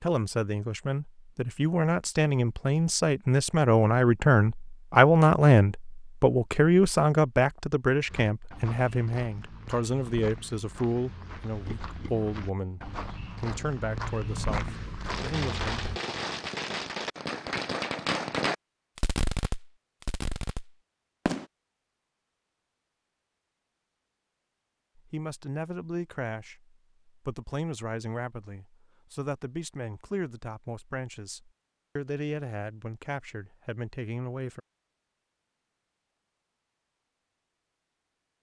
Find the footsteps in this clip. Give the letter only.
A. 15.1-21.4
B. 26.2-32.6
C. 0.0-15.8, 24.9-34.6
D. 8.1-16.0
D.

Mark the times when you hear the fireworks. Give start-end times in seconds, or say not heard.
15.1-21.4.